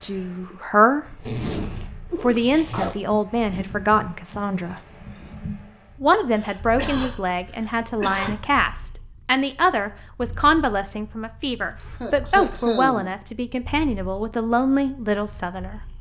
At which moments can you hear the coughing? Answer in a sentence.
The coughing can be heard from 2.1 to 3.0 s, from 5.9 to 8.5 s and from 12.0 to 13.1 s.